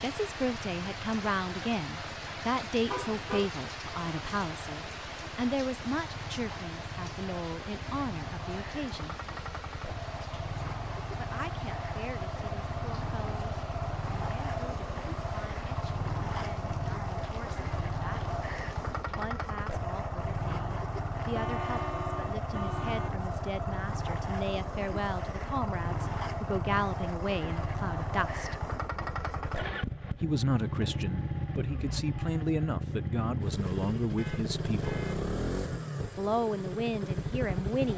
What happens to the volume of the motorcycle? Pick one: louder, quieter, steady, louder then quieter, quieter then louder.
louder.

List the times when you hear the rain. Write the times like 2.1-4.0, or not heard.
0.0-19.2.